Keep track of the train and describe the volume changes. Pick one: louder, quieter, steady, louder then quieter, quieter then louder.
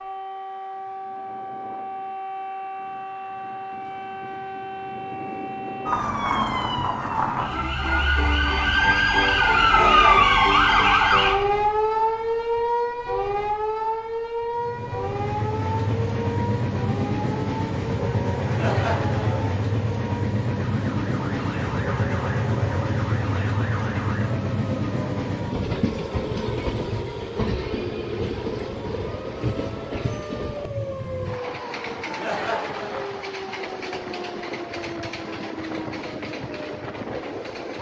quieter.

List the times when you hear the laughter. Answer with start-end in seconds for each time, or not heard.
9.6-10.2, 18.4-19.6, 32.0-33.3.